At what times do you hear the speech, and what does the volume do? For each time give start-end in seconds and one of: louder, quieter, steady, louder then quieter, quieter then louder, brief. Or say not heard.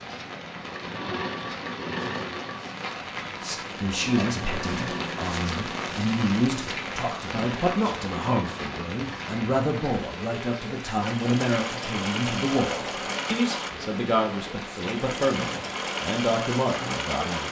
3.4-17.4 steady.